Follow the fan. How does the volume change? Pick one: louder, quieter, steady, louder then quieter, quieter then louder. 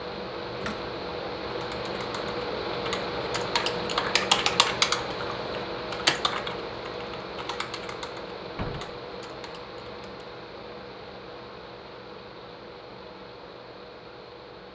quieter.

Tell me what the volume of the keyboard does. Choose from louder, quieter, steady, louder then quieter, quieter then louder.
louder then quieter.